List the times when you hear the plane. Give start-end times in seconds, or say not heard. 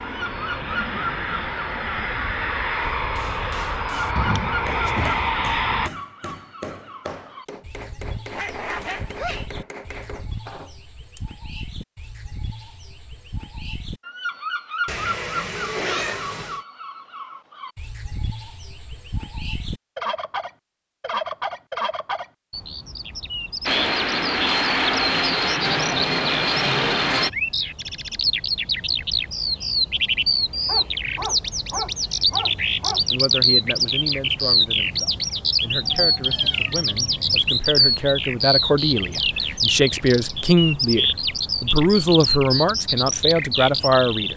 0.0-5.9, 23.6-27.3.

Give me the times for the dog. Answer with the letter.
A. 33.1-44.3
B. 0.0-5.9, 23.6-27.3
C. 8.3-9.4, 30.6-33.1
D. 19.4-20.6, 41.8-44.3
C.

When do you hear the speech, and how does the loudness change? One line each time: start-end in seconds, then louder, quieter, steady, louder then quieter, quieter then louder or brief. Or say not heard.
33.1-44.3 louder.